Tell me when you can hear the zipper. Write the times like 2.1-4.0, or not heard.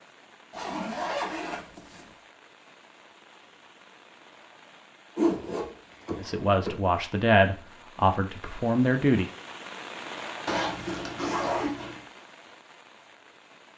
0.5-2.1, 5.2-6.8, 10.4-12.0.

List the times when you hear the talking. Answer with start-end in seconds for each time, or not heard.
6.2-9.3.